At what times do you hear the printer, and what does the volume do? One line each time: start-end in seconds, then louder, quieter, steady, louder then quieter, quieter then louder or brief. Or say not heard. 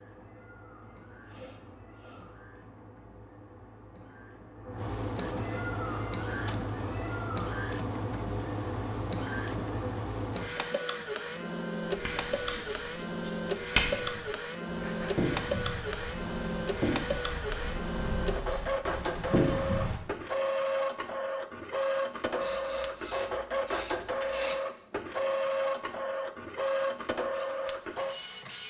0.0-28.6 louder.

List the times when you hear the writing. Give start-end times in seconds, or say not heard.
11.8-20.0.